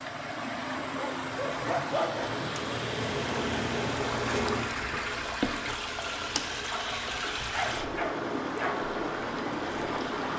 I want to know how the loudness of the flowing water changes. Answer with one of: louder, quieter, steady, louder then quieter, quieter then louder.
steady.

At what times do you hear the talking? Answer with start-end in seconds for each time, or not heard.
not heard.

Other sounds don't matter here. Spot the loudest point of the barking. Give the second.
2 s.